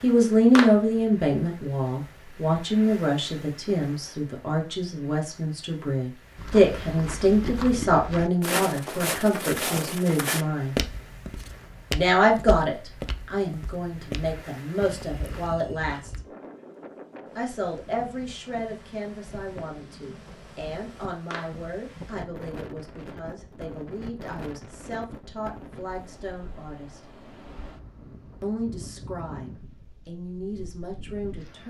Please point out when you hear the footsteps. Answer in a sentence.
The footsteps can be heard from 6.3 to 16.2 s.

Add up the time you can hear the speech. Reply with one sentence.
The speech can be heard for 28 seconds in total.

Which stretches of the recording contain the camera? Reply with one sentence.
The camera can't be heard in this clip.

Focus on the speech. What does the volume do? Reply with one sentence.
The loudness of the speech goes down.